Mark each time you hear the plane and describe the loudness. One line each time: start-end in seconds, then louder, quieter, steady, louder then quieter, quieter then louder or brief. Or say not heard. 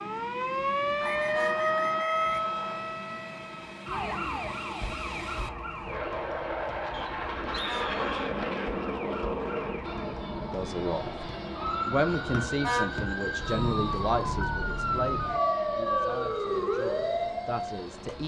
0.0-18.2 louder then quieter.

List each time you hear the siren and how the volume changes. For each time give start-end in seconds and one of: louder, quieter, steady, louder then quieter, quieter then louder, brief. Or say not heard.
0.0-18.1 quieter then louder.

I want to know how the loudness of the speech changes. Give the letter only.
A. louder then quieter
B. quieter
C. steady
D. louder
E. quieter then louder
B.